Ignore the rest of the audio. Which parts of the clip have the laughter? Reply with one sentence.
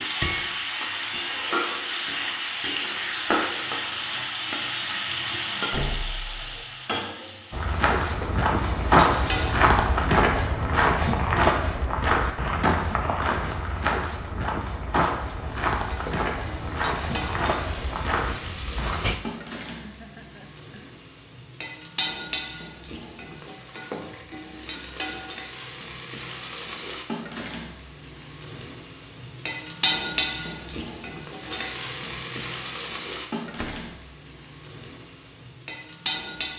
The laughter can be heard from 19.6 to 21.0 s.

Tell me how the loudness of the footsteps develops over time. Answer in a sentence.
The volume of the footsteps goes down.